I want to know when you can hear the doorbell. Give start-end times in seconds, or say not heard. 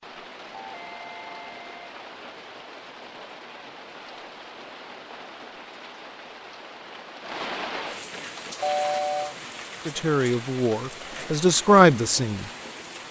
0.5-1.8, 8.6-9.3.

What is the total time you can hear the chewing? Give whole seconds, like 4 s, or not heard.
not heard.